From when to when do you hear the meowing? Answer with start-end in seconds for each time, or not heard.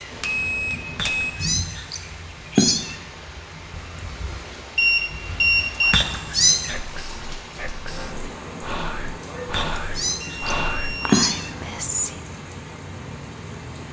0.9-3.0, 5.9-6.8, 9.5-11.5.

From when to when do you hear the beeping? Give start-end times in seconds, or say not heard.
0.2-1.3, 4.8-6.0, 9.8-11.2.